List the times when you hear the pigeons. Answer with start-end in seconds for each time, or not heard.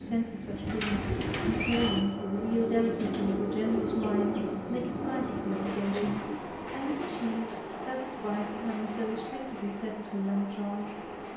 0.4-6.5.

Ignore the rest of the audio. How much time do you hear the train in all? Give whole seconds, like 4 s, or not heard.
11 s.